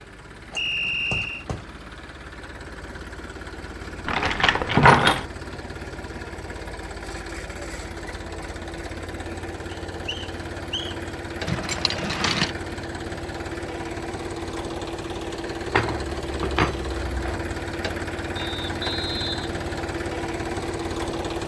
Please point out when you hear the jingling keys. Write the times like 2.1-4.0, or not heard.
4.0-5.2, 11.4-12.5, 15.7-17.6.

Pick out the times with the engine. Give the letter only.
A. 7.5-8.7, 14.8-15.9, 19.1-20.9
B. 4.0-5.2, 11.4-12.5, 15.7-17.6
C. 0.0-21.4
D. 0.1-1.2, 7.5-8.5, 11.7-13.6
C.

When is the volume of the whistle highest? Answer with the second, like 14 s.
1 s.